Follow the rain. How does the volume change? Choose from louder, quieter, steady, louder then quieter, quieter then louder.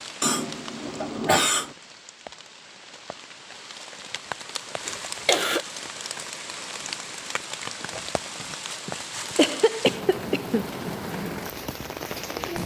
louder.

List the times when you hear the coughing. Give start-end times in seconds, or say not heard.
0.2-1.7, 4.8-5.6, 8.8-10.8.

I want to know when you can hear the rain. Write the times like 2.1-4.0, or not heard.
0.0-12.6.